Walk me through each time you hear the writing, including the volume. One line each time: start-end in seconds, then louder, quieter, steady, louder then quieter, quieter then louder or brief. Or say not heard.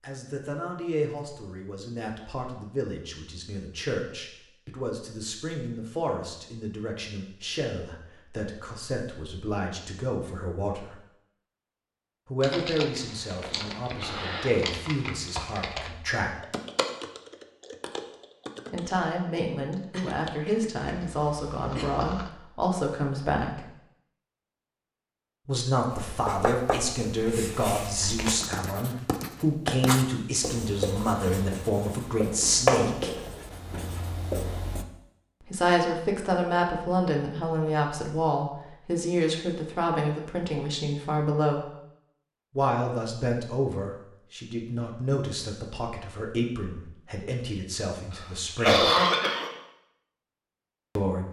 25.9-34.9 louder then quieter.